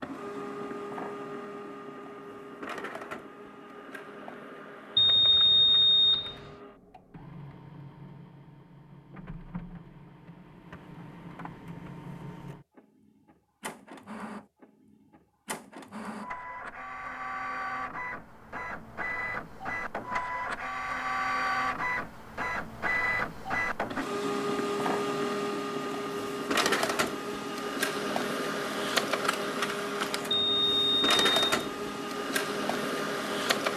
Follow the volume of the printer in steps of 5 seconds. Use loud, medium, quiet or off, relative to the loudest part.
medium, quiet, quiet, medium, loud, loud, loud.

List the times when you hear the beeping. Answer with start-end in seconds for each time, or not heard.
5.0-6.3, 30.3-31.7.